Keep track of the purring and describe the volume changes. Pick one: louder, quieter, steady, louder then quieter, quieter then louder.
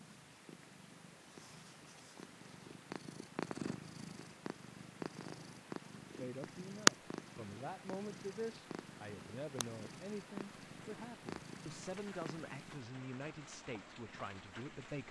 louder then quieter.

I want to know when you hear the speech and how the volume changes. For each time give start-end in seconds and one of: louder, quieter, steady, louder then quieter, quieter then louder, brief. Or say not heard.
6.2-15.0 steady.